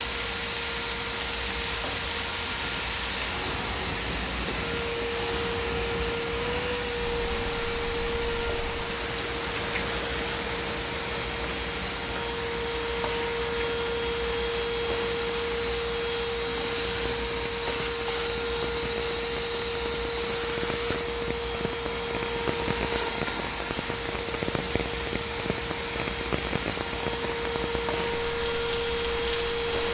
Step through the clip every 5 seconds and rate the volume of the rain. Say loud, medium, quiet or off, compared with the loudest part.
loud, loud, loud, medium, loud, loud.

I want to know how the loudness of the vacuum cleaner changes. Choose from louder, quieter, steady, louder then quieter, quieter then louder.
steady.